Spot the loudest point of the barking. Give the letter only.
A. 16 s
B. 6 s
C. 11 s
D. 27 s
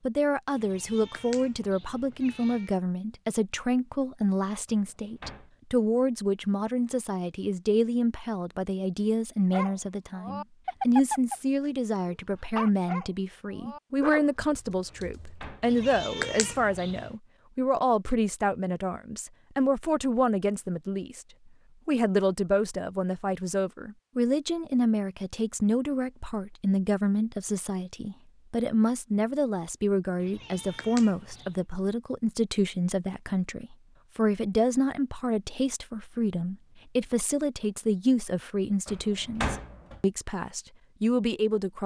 C.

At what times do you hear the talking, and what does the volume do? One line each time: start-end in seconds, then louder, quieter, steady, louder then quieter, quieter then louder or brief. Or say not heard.
0.1-21.2 steady
21.9-41.8 steady.